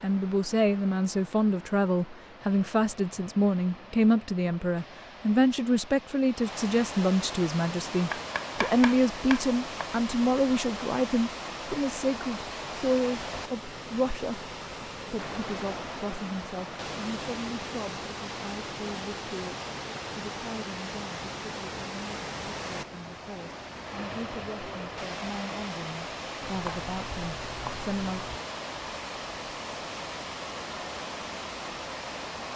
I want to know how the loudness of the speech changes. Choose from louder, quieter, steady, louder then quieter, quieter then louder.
quieter.